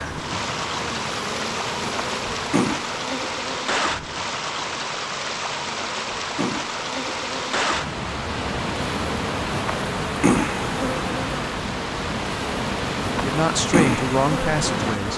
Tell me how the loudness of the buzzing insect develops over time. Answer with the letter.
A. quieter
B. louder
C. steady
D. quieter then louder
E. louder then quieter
D.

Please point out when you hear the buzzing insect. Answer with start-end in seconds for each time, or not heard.
0.0-15.1.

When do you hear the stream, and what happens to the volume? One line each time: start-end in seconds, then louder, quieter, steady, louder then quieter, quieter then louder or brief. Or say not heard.
0.0-15.1 steady.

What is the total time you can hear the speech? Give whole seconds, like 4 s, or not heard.
2 s.